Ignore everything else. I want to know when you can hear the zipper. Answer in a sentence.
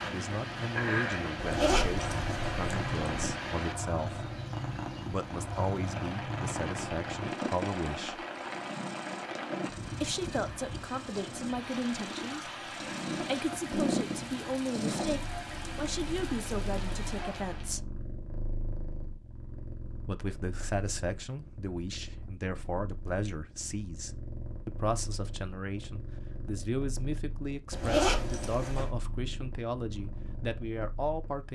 The zipper can be heard from 1.4 to 3.4 s and from 27.7 to 28.9 s.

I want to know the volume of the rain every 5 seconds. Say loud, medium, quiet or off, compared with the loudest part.
loud, loud, loud, loud, off, off, off.